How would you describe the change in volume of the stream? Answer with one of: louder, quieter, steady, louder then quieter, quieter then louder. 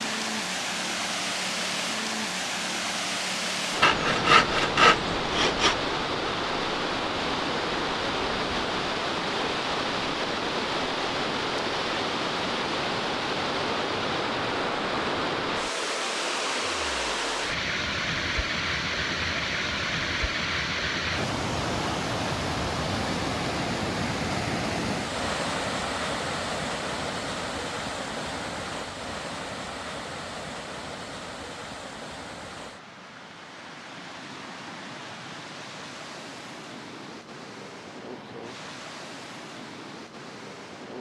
quieter.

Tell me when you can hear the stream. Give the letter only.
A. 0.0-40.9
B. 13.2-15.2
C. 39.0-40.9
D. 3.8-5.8
A.